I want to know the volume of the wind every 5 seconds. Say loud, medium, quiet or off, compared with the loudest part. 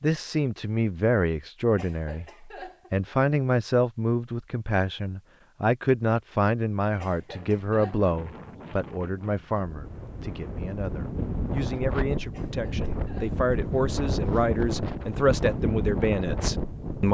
off, quiet, loud, loud.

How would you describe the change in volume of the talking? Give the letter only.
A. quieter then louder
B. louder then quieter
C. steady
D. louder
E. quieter
A.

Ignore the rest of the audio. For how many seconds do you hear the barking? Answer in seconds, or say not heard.
not heard.